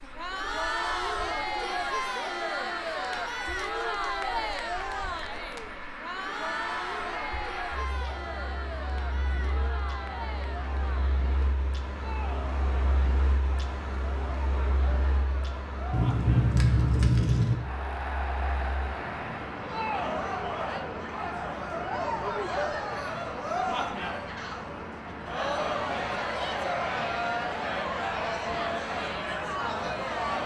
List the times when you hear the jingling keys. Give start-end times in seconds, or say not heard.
15.9-17.6.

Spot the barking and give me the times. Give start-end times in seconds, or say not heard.
not heard.